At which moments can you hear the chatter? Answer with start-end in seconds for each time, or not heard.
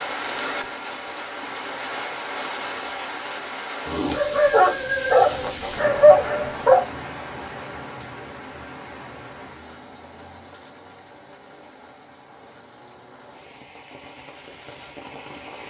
not heard.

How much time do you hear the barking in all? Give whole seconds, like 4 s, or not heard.
3 s.